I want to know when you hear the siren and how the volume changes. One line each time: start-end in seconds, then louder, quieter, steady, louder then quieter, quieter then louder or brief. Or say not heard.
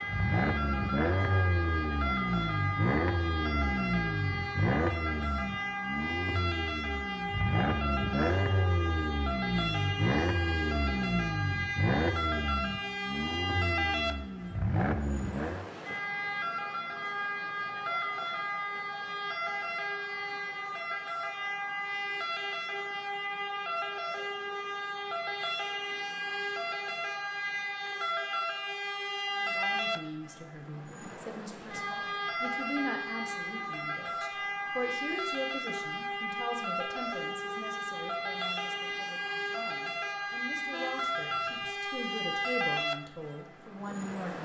0.0-44.3 steady.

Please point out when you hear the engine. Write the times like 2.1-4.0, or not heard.
0.1-15.7.